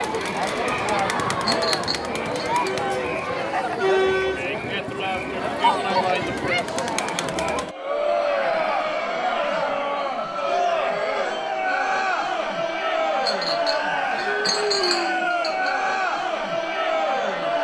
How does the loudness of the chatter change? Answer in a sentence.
The volume of the chatter stays about the same.